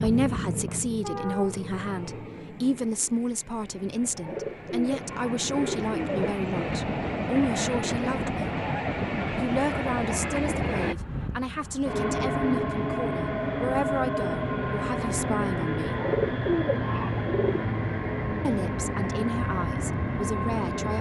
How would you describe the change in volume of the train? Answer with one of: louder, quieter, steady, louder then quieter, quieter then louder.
louder.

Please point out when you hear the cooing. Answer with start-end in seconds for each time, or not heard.
4.1-6.8, 15.8-17.6.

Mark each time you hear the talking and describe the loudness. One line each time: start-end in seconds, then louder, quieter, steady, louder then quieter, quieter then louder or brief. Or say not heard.
0.0-8.5 steady
9.3-15.9 steady
18.4-20.9 brief.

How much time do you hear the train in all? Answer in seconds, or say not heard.
21 s.